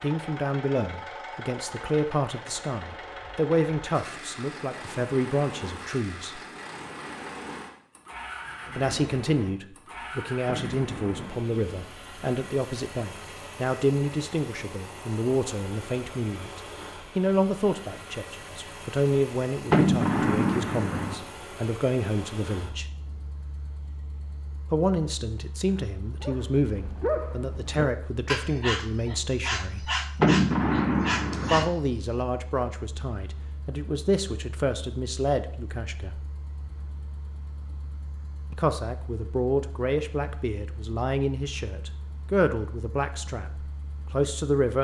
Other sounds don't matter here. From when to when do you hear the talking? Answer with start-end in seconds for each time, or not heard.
0.0-6.4, 8.8-22.9, 24.7-29.9, 31.4-36.2, 38.5-44.7.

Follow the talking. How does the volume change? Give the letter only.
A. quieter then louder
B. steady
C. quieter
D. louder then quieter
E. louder
B.